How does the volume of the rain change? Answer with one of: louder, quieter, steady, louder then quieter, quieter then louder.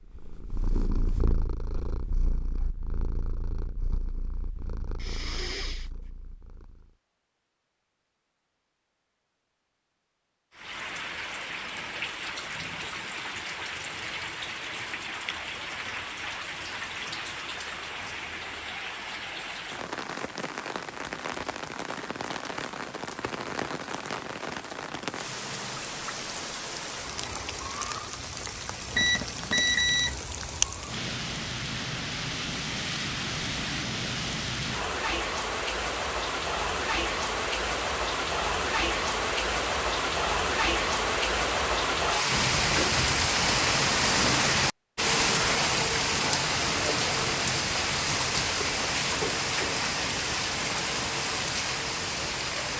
louder.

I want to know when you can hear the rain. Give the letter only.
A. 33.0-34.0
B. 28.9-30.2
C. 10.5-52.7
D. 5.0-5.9
C.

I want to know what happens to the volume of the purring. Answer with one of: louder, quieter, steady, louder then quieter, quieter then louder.
quieter.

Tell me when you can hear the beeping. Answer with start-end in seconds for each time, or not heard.
28.9-30.2.